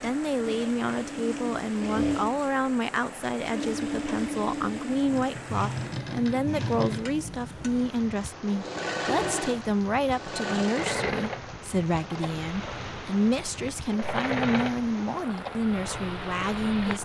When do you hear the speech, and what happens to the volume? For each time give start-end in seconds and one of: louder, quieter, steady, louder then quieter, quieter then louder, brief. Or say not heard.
0.0-17.0 steady.